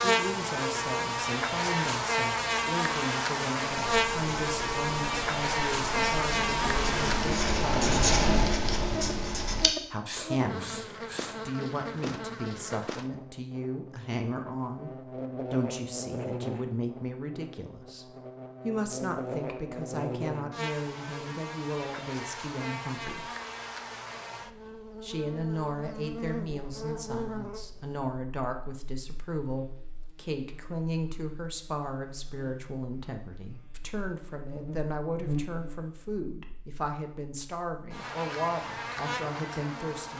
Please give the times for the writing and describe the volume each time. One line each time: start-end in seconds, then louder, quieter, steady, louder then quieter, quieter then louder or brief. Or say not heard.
3.9-11.3 louder then quieter.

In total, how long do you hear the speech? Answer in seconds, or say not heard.
36 s.